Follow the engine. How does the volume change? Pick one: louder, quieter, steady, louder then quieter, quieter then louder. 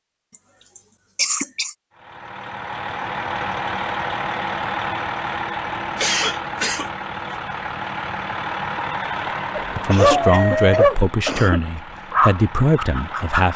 quieter.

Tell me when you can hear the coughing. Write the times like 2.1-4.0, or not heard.
1.1-1.8, 6.0-7.3, 9.8-11.8.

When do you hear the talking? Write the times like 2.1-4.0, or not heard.
9.8-13.5.